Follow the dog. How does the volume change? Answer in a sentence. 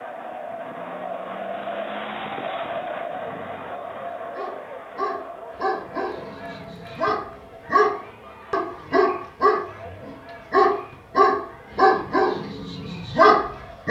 The volume of the dog goes up.